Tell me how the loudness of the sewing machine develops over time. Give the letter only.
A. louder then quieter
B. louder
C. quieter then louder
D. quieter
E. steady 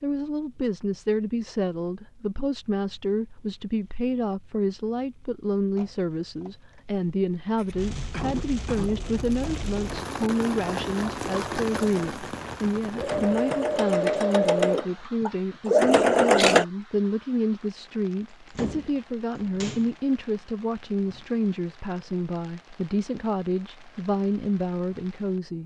B.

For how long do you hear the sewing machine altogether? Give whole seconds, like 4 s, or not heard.
8 s.